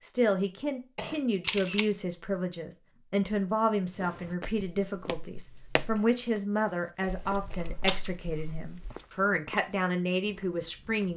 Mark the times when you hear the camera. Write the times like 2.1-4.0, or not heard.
1.4-1.9, 7.2-8.9.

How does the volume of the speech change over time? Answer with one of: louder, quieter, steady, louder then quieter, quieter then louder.
steady.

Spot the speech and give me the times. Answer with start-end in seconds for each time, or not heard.
0.0-11.1.